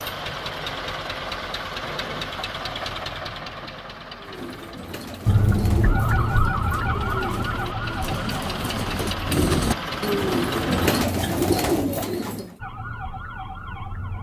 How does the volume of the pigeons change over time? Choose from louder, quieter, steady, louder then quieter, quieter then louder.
louder.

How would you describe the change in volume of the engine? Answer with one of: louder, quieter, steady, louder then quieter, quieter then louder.
quieter then louder.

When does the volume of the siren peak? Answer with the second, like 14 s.
6 s.